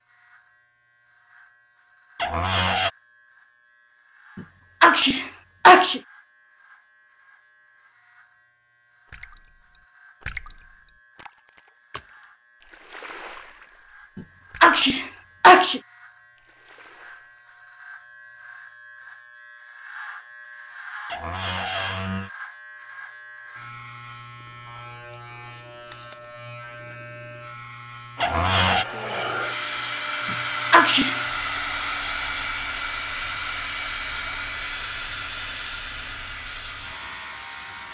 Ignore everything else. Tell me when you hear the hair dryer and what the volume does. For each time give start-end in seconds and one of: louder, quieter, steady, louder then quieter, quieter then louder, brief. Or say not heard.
28.1-37.8 quieter.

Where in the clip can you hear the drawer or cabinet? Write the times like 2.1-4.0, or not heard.
2.1-2.9, 21.1-22.3, 28.2-28.9.